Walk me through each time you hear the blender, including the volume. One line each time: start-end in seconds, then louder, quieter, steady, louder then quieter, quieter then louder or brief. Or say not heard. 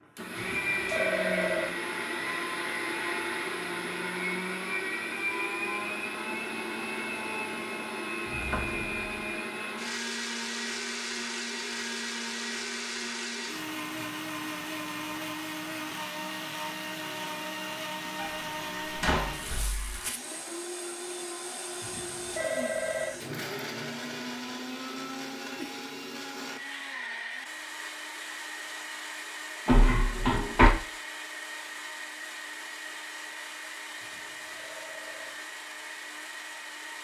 0.0-36.9 quieter.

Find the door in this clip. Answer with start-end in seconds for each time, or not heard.
8.2-9.2, 18.1-19.9, 29.6-30.7.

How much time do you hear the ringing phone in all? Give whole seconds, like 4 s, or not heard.
4 s.